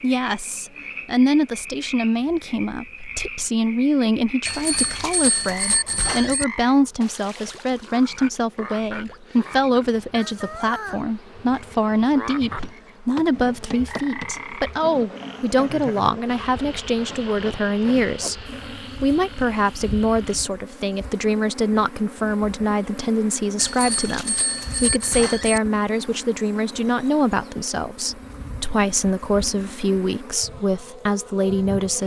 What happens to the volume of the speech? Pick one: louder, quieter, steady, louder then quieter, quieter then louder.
steady.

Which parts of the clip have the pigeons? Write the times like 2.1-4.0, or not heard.
not heard.